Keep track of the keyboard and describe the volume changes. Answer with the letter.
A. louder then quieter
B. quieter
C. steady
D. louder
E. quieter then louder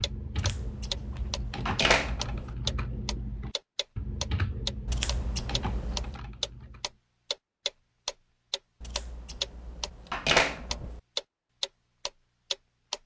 C.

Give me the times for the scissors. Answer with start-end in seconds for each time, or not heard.
0.3-2.5, 4.8-6.2, 8.8-11.0.